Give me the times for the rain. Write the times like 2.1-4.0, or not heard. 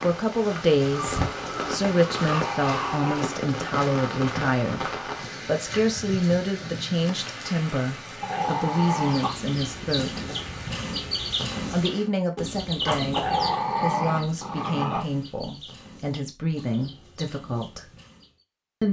0.0-12.1.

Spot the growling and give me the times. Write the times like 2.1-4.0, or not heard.
0.9-3.4, 8.2-9.2, 13.2-15.1.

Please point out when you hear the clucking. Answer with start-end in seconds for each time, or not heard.
9.0-18.4.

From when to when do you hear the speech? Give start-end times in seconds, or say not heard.
0.0-10.3, 11.7-17.9.